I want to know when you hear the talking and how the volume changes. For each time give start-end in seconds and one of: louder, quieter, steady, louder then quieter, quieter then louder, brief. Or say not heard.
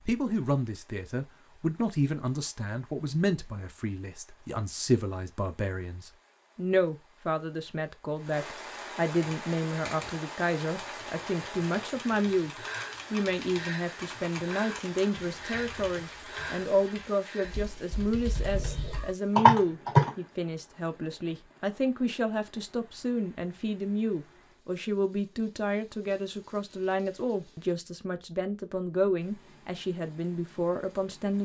0.1-31.3 steady.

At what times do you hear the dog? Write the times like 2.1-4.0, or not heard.
not heard.